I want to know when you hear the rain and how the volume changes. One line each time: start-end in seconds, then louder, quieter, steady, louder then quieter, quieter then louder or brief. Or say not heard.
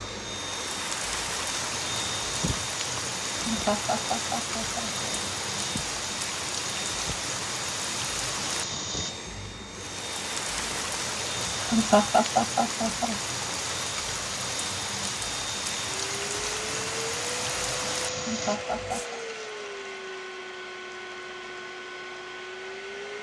0.0-19.1 steady.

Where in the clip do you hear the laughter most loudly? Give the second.
12 s.